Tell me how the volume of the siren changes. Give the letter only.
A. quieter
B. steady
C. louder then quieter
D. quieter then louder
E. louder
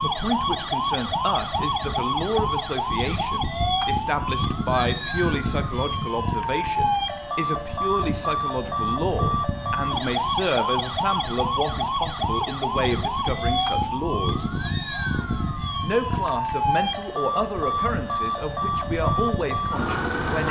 B.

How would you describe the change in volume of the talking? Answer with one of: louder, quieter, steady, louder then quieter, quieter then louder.
steady.